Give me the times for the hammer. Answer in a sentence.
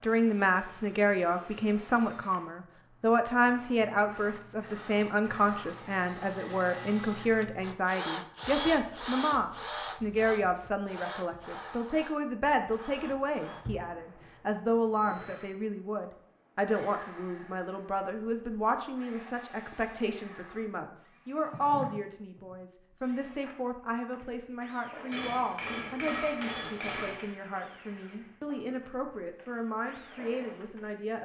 The hammer can be heard from 25.1 to 27.3 s.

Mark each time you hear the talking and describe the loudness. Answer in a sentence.
You can hear the talking from 0.0 to 31.2 s, getting quieter.